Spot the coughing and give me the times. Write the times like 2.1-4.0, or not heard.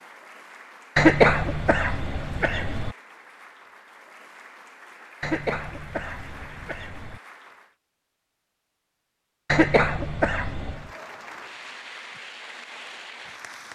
0.9-3.0, 5.2-7.2, 9.5-10.9.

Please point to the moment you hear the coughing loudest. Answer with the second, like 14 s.
1 s.